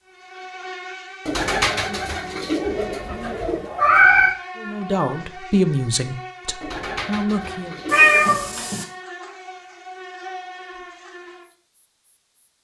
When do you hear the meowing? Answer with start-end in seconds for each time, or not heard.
2.6-4.3, 7.8-8.8.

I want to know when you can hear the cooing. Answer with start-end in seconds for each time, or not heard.
1.2-3.7, 6.6-8.8.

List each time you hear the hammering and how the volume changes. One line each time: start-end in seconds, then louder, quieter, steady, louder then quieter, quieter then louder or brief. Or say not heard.
not heard.